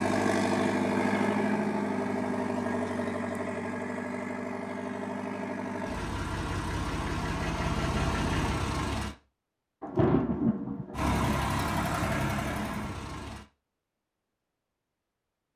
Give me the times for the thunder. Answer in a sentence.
You can hear the thunder from 9.8 to 11.2 s.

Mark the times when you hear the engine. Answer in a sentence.
The engine can be heard from 0.0 to 9.2 s and from 10.9 to 13.4 s.